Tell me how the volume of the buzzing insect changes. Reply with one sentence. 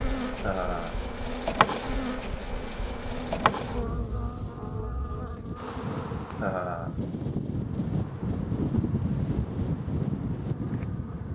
The loudness of the buzzing insect goes down.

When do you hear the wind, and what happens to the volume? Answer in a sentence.
The wind can be heard from 3.1 to 11.2 s, getting louder.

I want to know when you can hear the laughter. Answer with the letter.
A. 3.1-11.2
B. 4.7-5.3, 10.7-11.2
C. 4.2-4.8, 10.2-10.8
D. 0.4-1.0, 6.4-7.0
D.